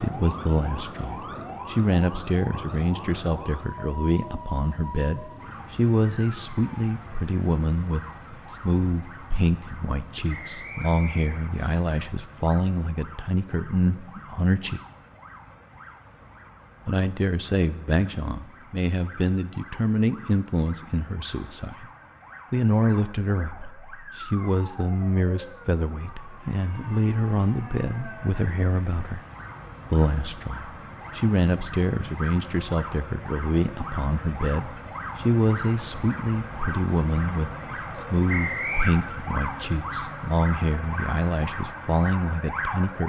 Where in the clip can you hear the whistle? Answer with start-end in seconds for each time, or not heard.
10.2-11.7, 38.2-39.0.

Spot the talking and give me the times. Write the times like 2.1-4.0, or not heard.
0.0-14.8, 16.9-21.9, 22.5-29.2, 29.9-43.0.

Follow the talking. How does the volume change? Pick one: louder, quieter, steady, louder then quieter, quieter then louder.
steady.